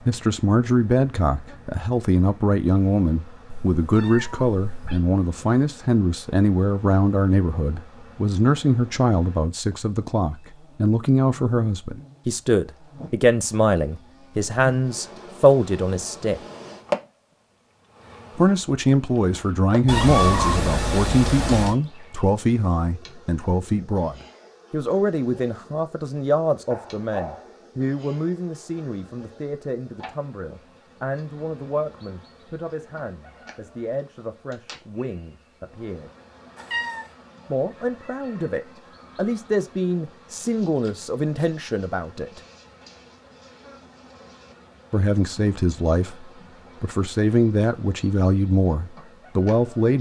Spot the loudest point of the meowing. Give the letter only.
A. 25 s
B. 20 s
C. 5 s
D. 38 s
B.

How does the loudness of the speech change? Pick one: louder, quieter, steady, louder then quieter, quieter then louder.
quieter then louder.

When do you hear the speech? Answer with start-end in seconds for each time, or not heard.
0.0-16.4, 18.4-36.1, 37.5-42.4, 44.9-49.9.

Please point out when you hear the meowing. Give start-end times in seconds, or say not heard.
3.5-5.0, 19.9-21.8, 36.5-37.1.